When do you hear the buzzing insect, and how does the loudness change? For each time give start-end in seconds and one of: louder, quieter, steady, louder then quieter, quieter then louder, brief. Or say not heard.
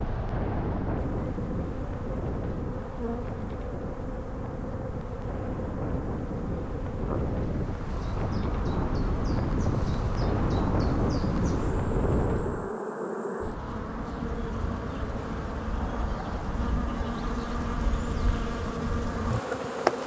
0.0-20.0 louder.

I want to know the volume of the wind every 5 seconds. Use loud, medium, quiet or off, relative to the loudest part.
medium, loud, loud, off.